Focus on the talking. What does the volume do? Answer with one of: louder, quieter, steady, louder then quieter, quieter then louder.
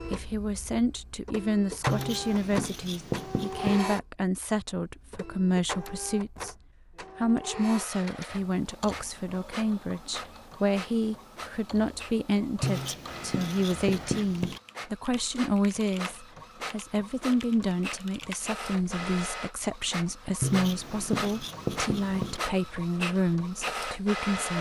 steady.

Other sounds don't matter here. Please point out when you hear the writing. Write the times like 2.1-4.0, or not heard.
1.9-3.9, 12.6-14.6, 20.4-22.4.